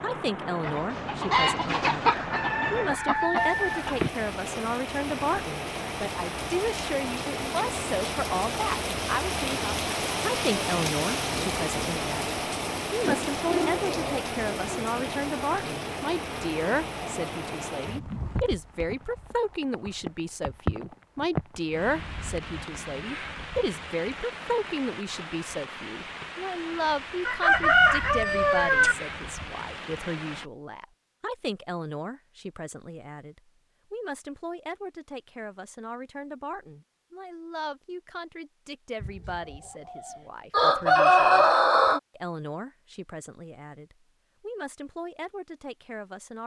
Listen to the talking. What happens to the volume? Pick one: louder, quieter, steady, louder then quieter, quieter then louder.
quieter.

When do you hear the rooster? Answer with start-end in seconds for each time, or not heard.
0.6-4.1, 27.2-28.9, 39.0-42.0.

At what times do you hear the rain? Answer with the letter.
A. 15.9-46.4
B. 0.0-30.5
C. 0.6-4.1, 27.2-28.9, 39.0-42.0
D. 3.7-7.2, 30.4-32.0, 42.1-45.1
B.